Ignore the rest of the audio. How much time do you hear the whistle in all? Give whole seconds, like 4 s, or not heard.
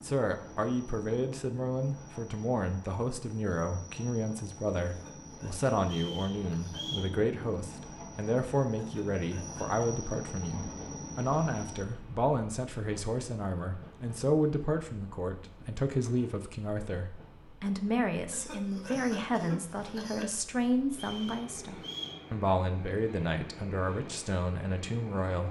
3 s.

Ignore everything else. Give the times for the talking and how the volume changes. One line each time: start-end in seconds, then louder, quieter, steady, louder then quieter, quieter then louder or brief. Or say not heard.
0.0-25.4 steady.